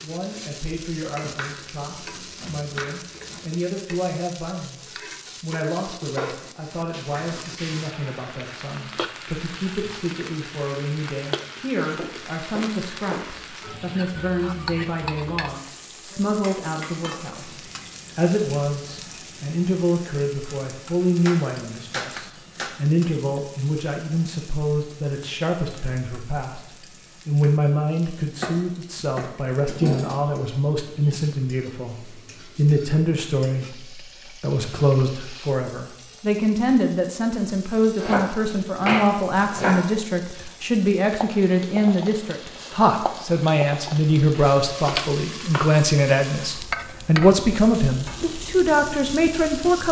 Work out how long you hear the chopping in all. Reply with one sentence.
You can hear the chopping for 11 seconds altogether.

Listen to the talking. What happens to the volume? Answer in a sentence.
The loudness of the talking goes up.